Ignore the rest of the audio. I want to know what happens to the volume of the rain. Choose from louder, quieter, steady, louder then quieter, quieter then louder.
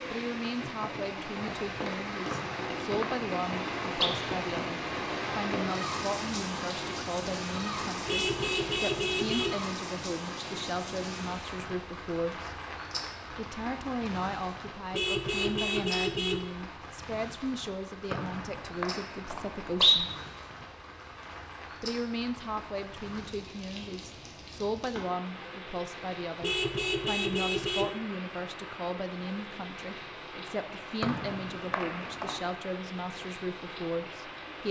quieter.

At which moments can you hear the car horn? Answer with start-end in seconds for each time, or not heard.
8.1-9.6, 14.9-16.4, 26.4-27.9.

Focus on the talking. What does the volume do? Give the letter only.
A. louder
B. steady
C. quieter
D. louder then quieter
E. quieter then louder
B.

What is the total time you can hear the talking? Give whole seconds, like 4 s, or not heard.
32 s.